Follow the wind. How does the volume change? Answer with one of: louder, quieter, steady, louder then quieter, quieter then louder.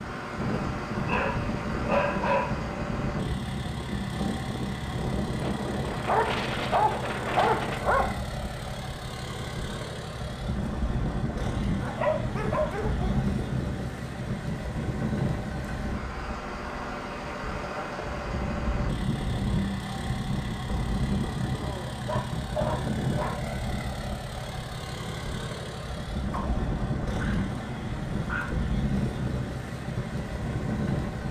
steady.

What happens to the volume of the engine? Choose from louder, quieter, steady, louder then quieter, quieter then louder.
steady.